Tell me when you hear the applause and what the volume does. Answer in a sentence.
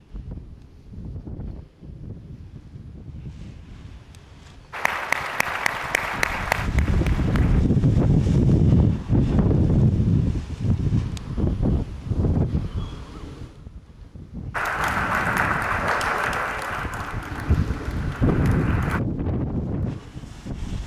You can hear the applause briefly from 4.7 to 7.7 s; and from 14.5 to 19.0 s, getting quieter.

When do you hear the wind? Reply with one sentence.
The wind can be heard from 0.0 to 20.8 s.